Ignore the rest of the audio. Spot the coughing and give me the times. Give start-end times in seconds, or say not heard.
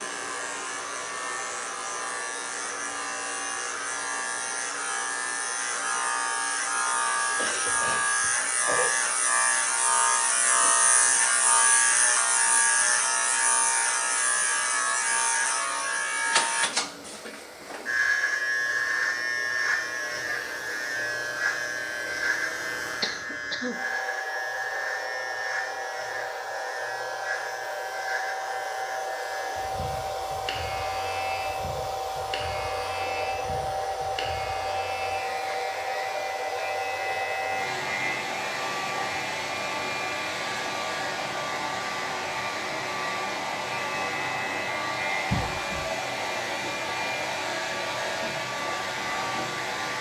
7.3-8.9, 23.0-23.8, 45.3-45.9.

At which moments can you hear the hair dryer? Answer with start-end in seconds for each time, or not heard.
0.0-49.9.